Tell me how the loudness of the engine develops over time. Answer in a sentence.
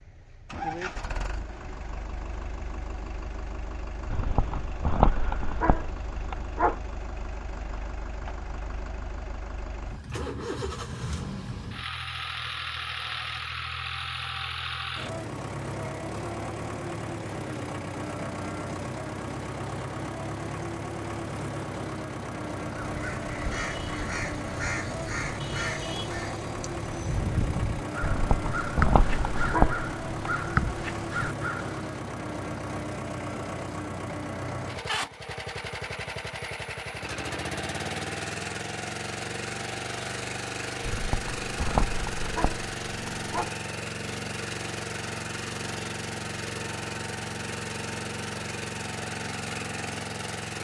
The volume of the engine goes up.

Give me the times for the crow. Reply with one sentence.
The crow can be heard from 22.8 to 31.8 s.